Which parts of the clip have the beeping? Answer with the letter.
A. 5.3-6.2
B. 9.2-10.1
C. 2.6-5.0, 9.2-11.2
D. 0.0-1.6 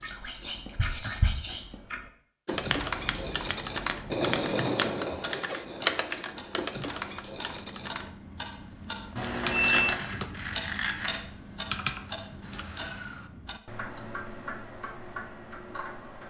B.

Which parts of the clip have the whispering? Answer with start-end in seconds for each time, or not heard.
0.0-1.6.